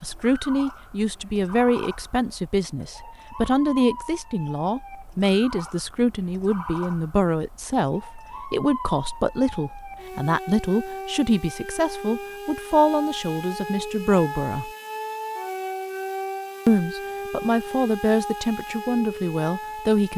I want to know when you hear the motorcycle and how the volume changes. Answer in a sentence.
You can't hear the motorcycle here.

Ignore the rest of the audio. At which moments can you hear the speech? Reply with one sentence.
The speech can be heard from 0.0 to 14.7 s and from 16.6 to 20.1 s.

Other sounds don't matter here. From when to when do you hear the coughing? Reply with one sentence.
The coughing can't be heard in this clip.